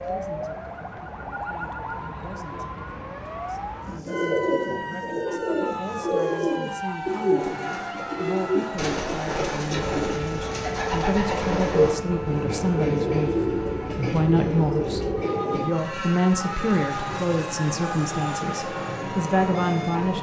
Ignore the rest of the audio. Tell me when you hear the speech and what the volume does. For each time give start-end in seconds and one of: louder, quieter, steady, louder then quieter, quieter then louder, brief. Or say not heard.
0.0-20.1 louder.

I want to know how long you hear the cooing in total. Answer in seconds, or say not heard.
12 s.